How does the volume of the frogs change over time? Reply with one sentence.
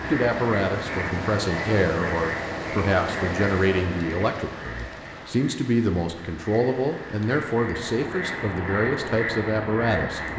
The volume of the frogs goes down, then up.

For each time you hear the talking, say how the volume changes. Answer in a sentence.
The talking can be heard from 0.1 to 10.3 s, at a steady volume.